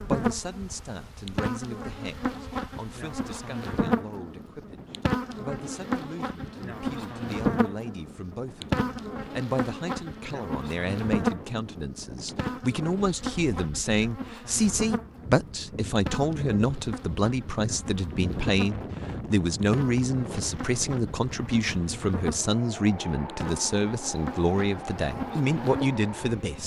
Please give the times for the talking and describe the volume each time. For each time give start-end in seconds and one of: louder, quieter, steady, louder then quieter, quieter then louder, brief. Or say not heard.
0.0-26.6 louder.